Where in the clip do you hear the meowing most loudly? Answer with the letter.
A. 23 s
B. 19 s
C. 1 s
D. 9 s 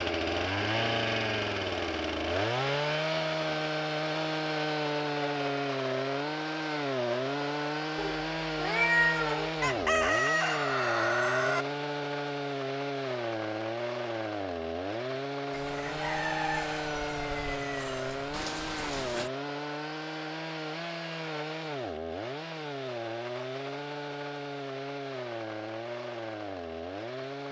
D.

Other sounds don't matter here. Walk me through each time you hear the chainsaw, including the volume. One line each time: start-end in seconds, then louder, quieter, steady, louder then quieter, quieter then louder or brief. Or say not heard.
0.0-27.4 quieter.